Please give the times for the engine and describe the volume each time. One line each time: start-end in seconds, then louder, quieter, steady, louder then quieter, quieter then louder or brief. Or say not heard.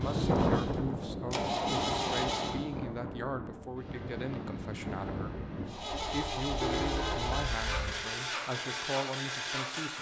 0.0-2.6 brief
5.7-9.9 steady.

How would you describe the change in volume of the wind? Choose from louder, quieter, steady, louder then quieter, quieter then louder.
quieter.